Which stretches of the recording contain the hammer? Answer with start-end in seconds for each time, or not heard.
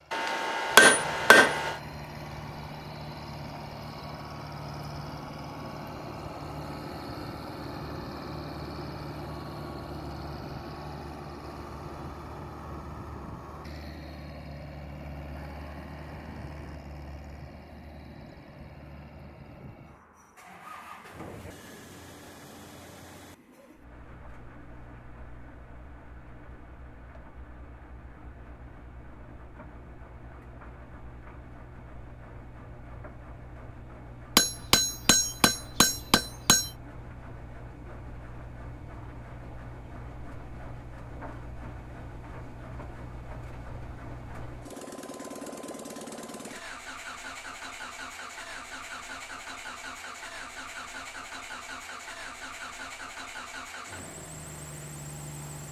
0.1-1.8, 34.4-36.7.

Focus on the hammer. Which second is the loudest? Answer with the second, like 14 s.
1 s.